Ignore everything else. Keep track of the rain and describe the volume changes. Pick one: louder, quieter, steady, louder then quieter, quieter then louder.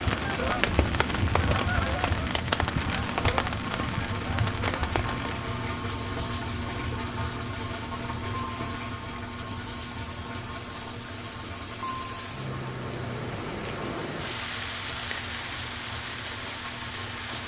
quieter then louder.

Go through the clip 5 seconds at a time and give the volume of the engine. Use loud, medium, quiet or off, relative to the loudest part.
loud, loud, medium, medium.